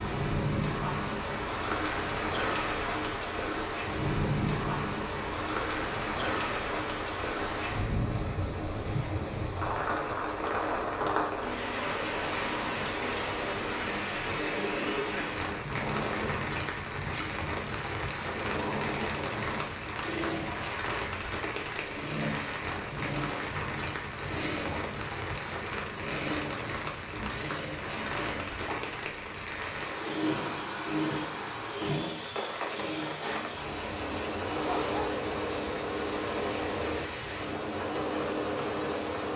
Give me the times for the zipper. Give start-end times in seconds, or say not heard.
34.5-35.2.